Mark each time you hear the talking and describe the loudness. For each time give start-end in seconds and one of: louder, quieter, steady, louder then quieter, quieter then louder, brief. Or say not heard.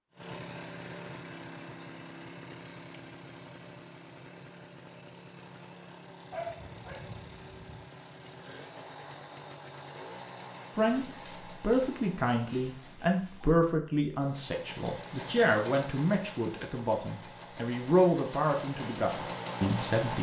10.8-20.1 steady.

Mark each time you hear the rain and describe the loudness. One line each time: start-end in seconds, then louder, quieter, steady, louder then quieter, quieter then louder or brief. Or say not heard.
not heard.